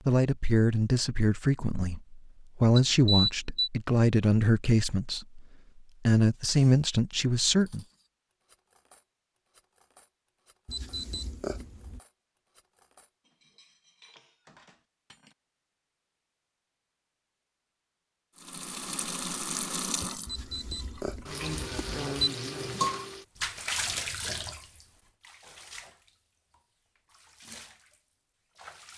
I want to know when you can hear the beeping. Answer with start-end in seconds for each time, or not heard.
2.8-3.7, 10.7-12.0, 20.2-22.3.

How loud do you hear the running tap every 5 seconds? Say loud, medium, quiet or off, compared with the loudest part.
off, off, off, loud, loud, quiet.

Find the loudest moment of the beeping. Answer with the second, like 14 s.
3 s.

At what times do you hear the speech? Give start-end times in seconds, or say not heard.
0.1-5.5, 6.0-7.8.